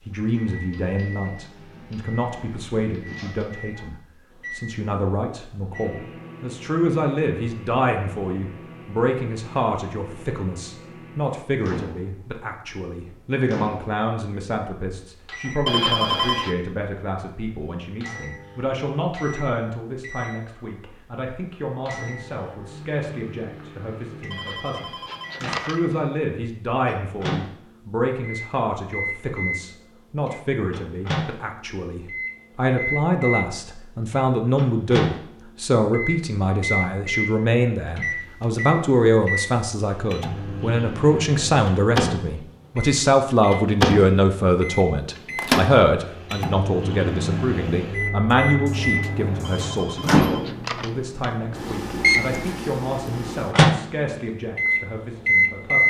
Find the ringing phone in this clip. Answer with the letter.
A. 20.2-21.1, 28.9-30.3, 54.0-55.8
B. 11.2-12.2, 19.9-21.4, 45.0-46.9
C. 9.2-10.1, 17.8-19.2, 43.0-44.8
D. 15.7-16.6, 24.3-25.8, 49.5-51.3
D.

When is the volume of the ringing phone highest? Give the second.
16 s.